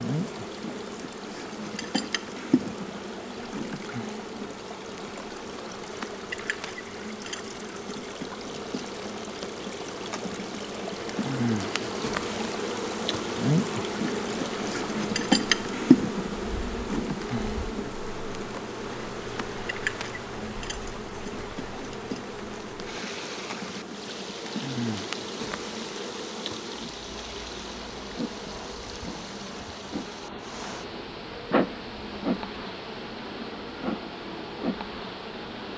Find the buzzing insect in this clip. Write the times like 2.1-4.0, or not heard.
0.0-35.7.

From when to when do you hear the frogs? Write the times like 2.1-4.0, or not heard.
not heard.